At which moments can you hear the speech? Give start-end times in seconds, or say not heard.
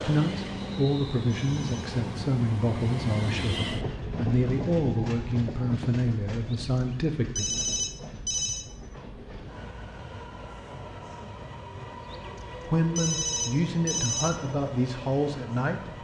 0.0-7.5, 12.7-15.9.